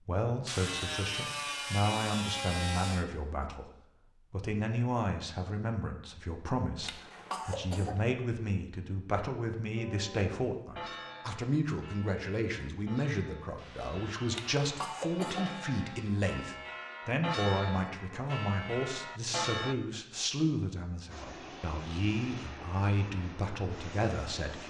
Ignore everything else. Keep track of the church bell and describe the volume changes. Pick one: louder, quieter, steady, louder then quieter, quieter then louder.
quieter then louder.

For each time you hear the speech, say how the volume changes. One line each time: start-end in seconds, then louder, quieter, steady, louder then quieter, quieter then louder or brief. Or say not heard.
0.0-24.6 steady.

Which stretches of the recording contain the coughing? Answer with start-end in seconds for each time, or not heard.
6.8-8.0, 14.3-15.6.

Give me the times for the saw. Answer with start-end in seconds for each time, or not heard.
0.5-3.0, 13.6-16.2.